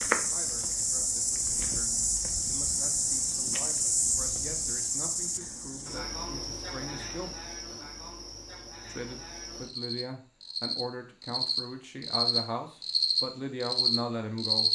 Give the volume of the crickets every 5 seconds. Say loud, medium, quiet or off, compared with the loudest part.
loud, medium, loud.